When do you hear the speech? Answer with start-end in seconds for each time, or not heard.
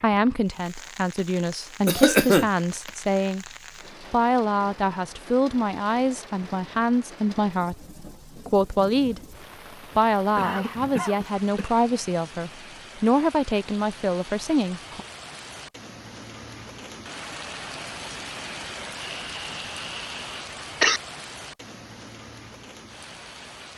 0.0-9.2, 9.9-15.1.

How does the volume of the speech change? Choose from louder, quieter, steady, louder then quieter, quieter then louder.
steady.